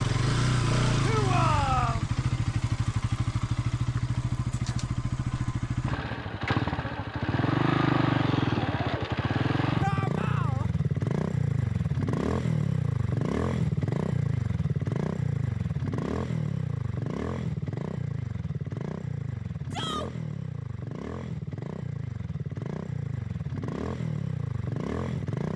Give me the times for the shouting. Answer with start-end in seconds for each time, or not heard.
1.0-2.1, 9.8-10.7, 19.7-20.1.